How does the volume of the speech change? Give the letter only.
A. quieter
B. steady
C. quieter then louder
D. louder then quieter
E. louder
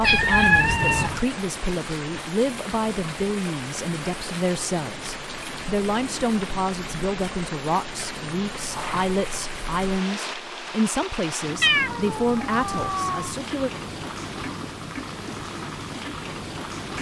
B.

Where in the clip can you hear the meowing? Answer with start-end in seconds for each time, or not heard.
0.0-1.2, 8.7-9.2, 11.6-13.3.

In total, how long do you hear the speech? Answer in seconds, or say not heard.
14 s.